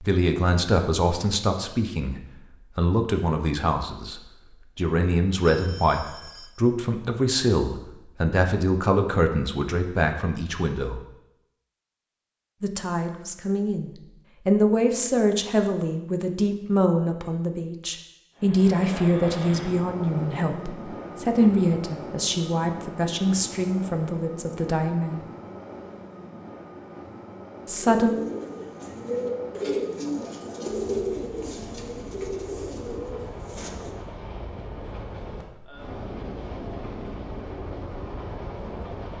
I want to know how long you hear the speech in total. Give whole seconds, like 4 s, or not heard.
24 s.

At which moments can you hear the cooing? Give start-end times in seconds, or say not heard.
27.9-34.0.